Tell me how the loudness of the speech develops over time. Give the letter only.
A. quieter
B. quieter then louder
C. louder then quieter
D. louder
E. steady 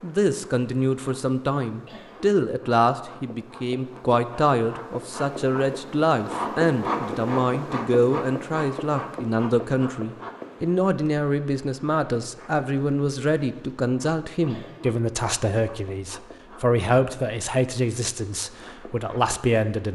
E.